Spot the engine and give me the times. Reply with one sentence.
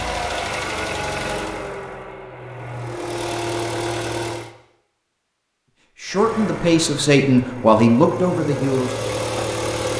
The engine can be heard from 0.0 to 4.5 s and from 6.0 to 9.9 s.